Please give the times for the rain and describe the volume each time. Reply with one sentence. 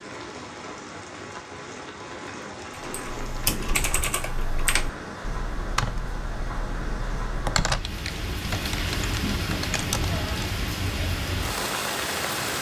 You can hear the rain from 0.0 to 12.5 s, getting louder.